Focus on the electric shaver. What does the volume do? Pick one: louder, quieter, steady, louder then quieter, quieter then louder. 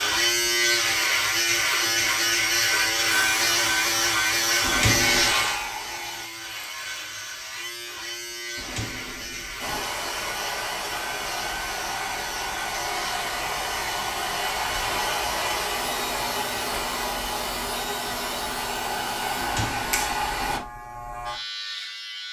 quieter.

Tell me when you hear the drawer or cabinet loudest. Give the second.
5 s.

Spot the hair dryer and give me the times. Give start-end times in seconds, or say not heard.
3.1-6.3, 9.6-20.6.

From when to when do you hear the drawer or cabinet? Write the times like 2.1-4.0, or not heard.
4.6-5.3, 8.6-9.8, 19.4-20.6.